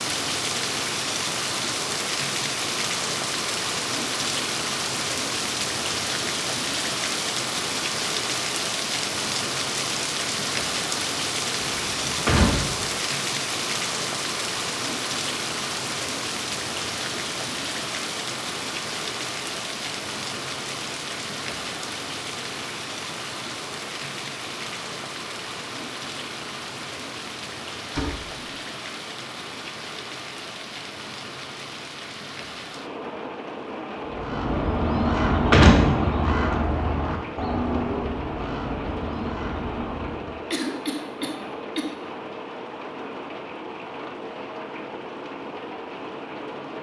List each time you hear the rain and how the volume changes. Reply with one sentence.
You can hear the rain from 0.0 to 46.7 s, getting quieter.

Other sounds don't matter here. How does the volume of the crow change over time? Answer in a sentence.
The loudness of the crow goes down.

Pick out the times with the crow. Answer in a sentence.
The crow can be heard from 34.0 to 40.5 s.